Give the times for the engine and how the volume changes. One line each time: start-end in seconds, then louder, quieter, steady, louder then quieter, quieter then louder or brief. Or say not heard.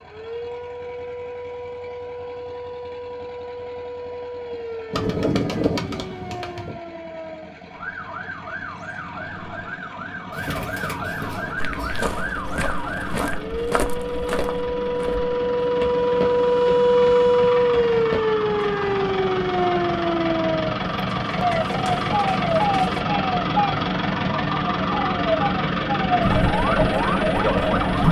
0.0-28.0 louder.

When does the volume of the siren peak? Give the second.
17 s.